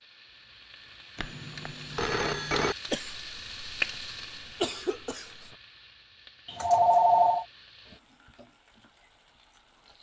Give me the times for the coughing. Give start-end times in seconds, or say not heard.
2.9-5.5.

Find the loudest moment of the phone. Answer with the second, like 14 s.
7 s.